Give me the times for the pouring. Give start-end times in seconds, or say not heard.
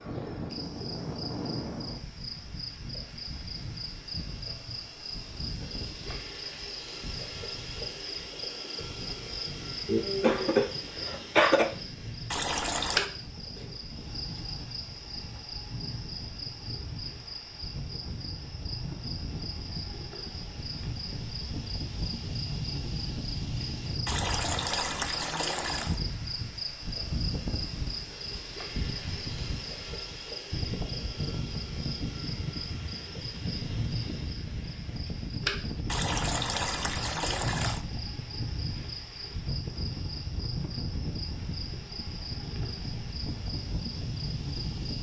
12.3-13.1, 24.1-26.0, 35.9-37.8.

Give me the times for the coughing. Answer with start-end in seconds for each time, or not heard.
9.8-11.7.